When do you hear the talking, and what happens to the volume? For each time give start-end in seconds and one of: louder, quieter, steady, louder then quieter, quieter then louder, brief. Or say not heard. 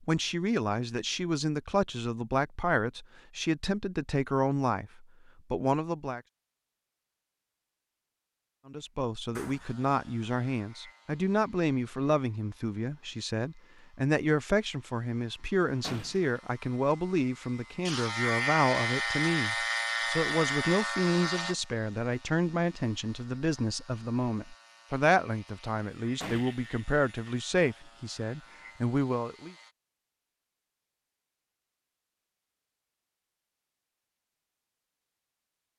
0.0-6.2 steady
8.7-29.6 steady.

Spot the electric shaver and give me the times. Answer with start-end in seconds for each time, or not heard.
9.6-29.7.